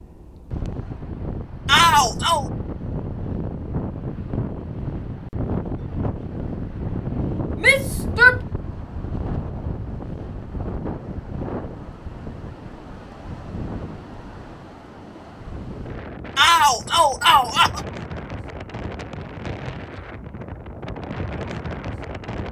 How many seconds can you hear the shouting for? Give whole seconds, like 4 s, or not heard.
3 s.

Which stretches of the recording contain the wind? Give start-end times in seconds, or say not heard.
0.0-22.4.